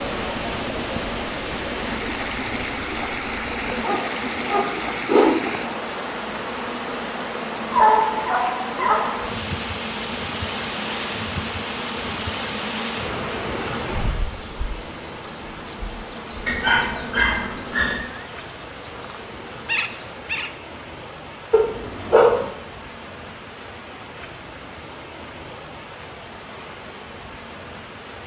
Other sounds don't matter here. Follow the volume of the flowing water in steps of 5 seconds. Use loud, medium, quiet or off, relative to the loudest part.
loud, loud, loud, medium, medium, medium.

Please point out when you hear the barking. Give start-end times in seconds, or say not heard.
3.5-5.5, 7.7-9.3, 16.4-18.1, 21.5-22.5.